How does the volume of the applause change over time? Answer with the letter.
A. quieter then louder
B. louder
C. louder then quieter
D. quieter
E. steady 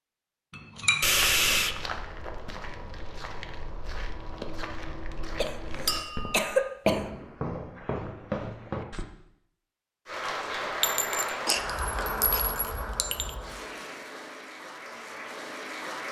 D.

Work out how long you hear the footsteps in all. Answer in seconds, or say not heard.
8 s.